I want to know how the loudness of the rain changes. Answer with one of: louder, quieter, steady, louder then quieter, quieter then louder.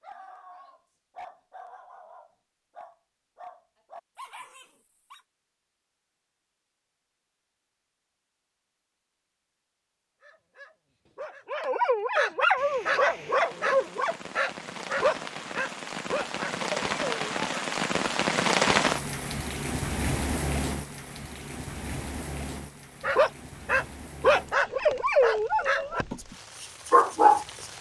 louder then quieter.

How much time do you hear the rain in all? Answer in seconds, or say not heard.
15 s.